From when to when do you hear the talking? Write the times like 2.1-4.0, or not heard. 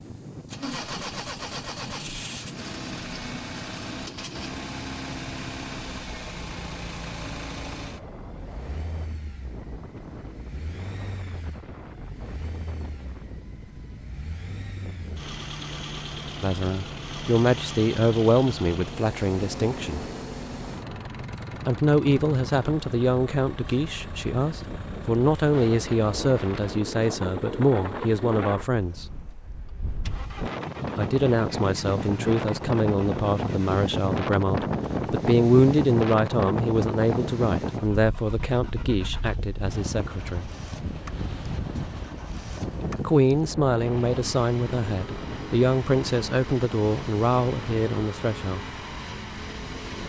16.4-20.1, 21.6-29.1, 30.9-40.5, 43.0-48.6.